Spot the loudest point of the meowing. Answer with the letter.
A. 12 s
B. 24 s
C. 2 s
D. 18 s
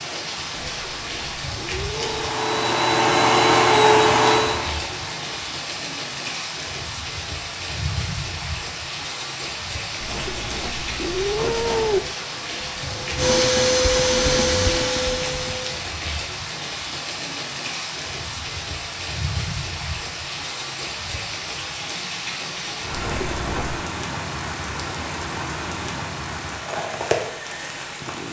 A.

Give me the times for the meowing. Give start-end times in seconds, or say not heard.
0.6-2.2, 10.0-12.0, 22.9-23.9.